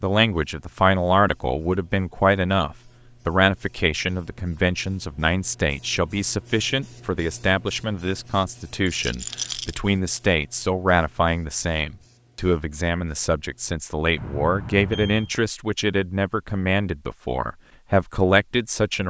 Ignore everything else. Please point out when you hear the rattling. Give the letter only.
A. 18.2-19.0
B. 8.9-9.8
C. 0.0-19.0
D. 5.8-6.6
B.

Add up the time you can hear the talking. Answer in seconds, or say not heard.
19 s.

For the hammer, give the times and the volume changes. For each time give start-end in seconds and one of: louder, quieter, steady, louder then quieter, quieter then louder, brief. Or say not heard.
not heard.